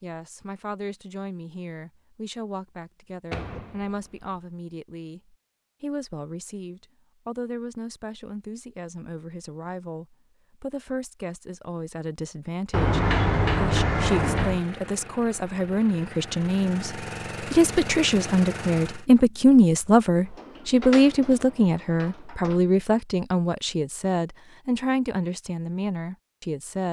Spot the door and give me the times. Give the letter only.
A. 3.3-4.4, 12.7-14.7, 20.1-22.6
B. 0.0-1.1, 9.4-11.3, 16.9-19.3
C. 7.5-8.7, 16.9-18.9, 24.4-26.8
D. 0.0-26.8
A.